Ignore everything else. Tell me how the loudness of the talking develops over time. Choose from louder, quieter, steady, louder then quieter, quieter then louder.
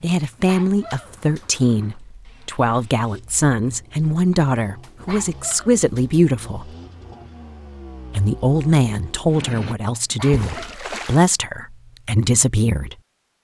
steady.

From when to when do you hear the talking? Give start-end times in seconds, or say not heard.
0.0-6.7, 8.2-12.9.